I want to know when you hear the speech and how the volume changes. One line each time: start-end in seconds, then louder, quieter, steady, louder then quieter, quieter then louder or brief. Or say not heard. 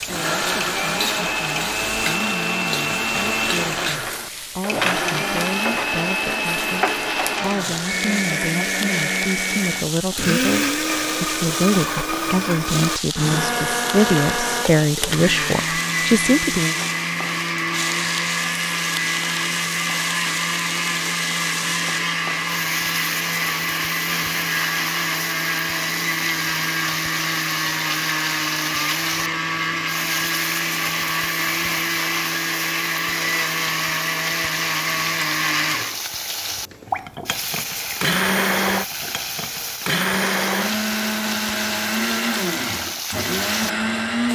0.0-16.8 louder.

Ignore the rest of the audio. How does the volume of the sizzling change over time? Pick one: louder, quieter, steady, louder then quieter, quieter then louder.
steady.